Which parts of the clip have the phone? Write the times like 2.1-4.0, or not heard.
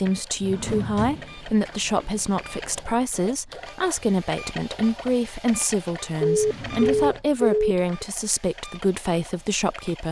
1.1-3.0, 6.2-8.1.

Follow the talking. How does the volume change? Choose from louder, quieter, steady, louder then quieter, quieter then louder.
steady.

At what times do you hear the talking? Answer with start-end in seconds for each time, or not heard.
0.0-10.0.